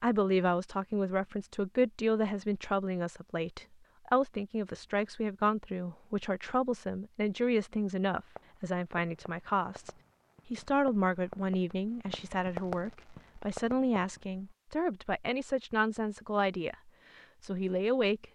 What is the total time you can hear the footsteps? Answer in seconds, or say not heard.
not heard.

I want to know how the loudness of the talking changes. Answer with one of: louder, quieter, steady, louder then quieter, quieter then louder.
steady.